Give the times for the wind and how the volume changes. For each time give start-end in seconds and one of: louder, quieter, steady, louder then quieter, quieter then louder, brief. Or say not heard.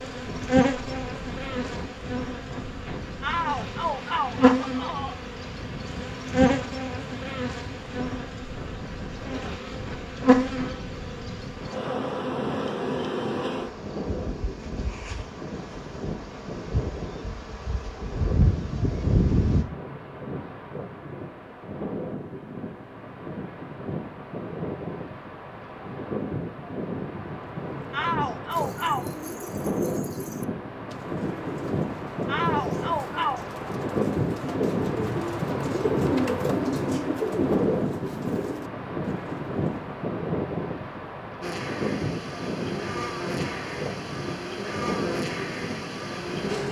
0.0-46.6 louder.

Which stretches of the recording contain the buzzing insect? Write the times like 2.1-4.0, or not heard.
0.0-19.6, 41.4-46.6.